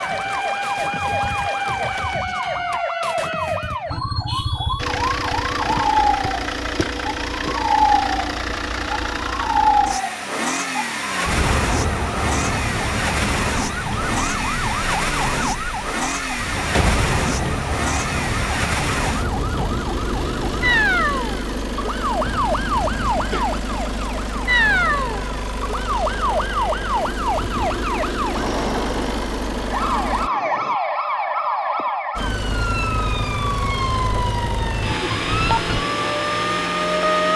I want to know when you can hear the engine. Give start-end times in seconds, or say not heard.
4.8-30.3, 32.1-37.3.